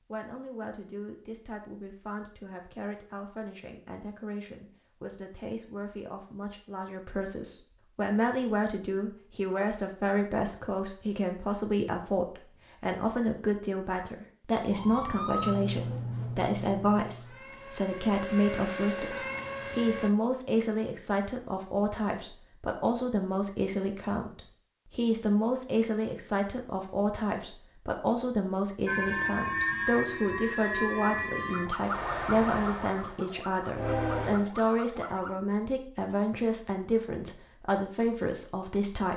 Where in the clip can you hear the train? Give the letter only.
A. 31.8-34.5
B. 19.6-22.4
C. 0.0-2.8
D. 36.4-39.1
A.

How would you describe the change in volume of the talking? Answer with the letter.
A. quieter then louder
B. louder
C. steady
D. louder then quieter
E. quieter
B.